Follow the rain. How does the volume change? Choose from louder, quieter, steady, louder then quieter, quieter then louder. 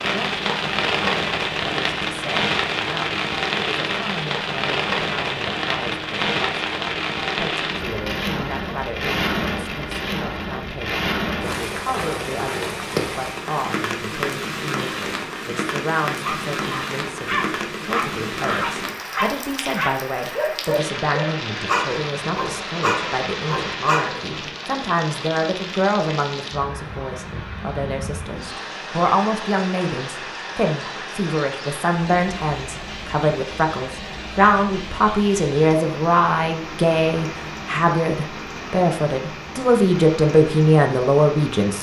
quieter.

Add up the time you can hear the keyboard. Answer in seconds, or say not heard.
not heard.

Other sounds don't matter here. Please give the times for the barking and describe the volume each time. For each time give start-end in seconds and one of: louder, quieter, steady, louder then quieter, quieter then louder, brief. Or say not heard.
16.2-24.6 steady.